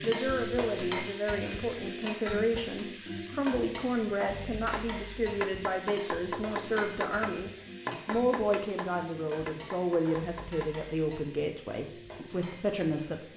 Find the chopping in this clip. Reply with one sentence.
The chopping can be heard from 4.7 to 10.7 s.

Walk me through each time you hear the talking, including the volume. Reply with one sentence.
You can hear the talking from 0.0 to 13.3 s, at a steady volume.